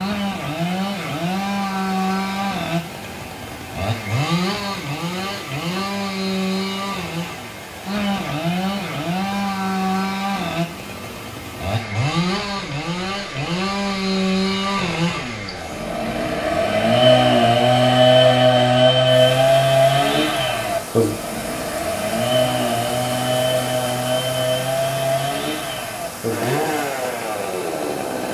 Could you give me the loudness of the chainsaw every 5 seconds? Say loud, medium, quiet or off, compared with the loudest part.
medium, medium, medium, loud, medium, medium.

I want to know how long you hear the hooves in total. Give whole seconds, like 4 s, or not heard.
not heard.